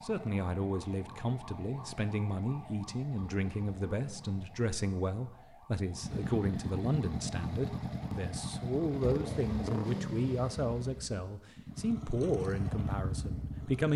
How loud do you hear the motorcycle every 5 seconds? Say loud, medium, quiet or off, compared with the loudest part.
quiet, loud, loud.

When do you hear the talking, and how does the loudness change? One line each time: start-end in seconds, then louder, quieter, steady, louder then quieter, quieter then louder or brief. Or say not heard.
0.0-13.9 steady.